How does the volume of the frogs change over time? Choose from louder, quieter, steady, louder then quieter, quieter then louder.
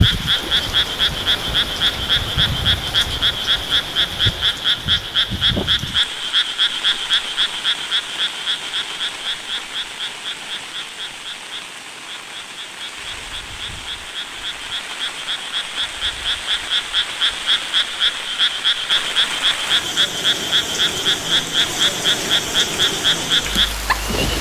quieter then louder.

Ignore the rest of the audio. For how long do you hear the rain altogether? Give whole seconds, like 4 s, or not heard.
24 s.